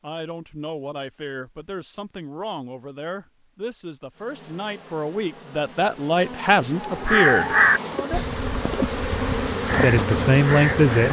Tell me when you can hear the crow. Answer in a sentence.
The crow can be heard from 6.8 to 11.0 s.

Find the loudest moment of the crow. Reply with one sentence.
The loudest moment of the crow is at 8 seconds.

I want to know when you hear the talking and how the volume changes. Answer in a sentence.
The talking can be heard from 0.0 to 7.5 s, getting louder; and briefly from 9.8 to 11.0 s.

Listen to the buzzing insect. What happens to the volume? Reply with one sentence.
The loudness of the buzzing insect goes up.